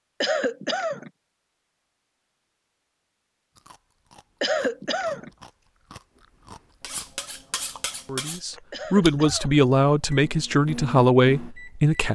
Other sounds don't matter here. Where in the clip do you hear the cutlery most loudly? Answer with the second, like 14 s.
8 s.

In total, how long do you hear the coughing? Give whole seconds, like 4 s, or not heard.
3 s.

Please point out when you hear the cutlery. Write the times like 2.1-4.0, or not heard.
6.8-8.4.